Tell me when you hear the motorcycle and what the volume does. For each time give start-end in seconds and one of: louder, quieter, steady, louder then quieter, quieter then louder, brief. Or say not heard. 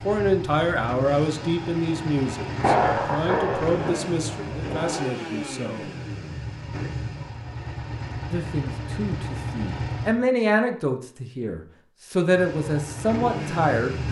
0.0-10.2 steady
12.3-14.0 brief.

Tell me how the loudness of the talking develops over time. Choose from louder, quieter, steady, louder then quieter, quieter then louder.
quieter then louder.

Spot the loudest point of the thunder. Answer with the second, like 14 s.
3 s.